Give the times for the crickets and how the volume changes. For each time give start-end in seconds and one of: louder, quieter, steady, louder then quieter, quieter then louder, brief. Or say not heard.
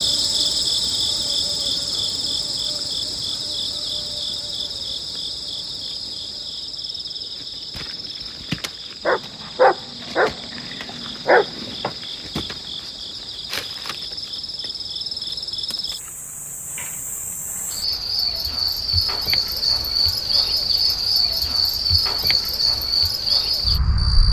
0.0-24.2 quieter then louder.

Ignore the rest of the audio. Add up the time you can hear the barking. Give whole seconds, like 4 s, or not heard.
3 s.